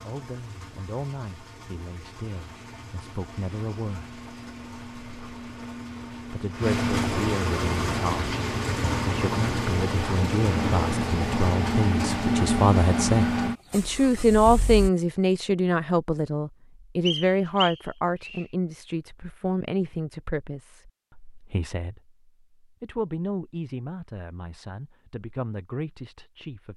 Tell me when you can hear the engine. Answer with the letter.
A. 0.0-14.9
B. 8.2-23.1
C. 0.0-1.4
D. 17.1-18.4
A.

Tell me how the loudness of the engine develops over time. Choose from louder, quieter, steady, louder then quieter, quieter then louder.
louder.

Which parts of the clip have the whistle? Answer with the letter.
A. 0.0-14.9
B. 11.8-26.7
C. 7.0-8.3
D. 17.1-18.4
D.